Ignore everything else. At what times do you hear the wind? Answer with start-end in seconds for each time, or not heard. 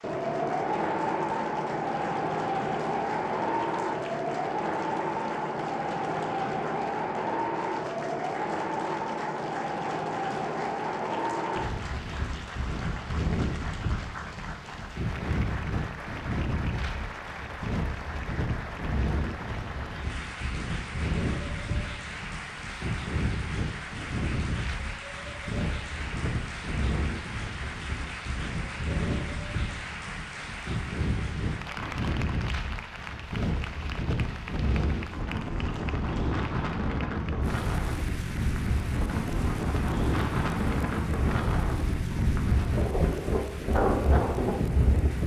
0.0-45.2.